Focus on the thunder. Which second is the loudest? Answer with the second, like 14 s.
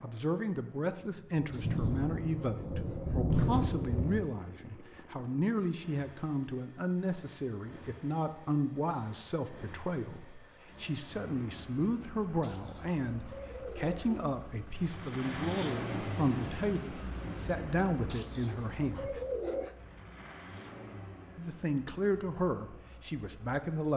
3 s.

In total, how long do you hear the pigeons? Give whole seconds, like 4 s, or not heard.
6 s.